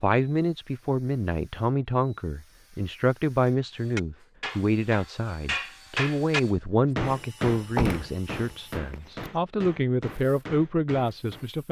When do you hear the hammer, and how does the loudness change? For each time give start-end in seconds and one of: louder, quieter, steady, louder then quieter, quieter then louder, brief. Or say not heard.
3.5-11.5 louder then quieter.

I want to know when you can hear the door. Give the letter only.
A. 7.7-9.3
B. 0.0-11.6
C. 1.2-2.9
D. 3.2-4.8
A.